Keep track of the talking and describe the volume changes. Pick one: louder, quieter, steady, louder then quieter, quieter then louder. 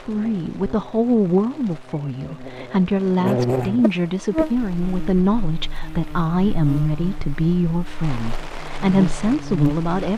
steady.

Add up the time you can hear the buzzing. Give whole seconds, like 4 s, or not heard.
10 s.